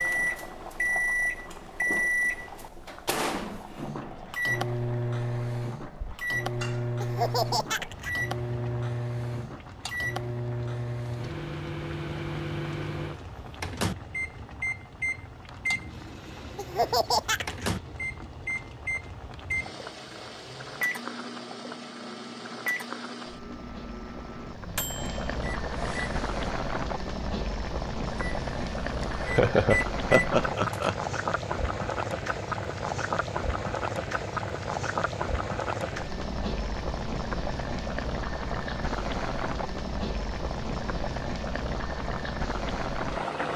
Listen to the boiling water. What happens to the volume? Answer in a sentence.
The volume of the boiling water goes up.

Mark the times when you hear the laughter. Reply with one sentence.
The laughter can be heard from 7.0 to 8.1 s, from 16.6 to 17.7 s and from 29.0 to 30.9 s.